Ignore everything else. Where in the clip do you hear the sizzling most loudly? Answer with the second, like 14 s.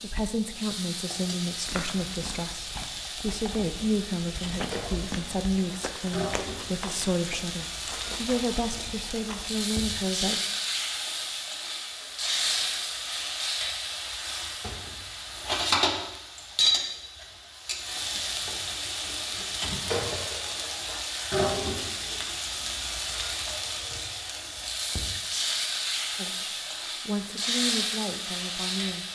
16 s.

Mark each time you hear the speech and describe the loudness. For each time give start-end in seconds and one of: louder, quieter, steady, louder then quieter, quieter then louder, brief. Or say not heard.
0.0-10.4 steady
26.1-29.1 brief.